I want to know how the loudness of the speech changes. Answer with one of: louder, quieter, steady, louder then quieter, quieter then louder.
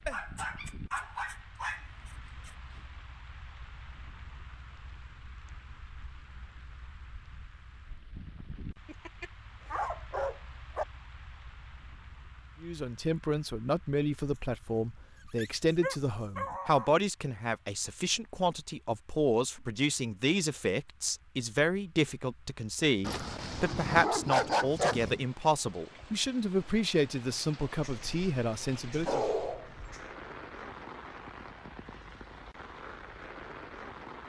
steady.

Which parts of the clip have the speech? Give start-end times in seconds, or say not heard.
12.6-29.2.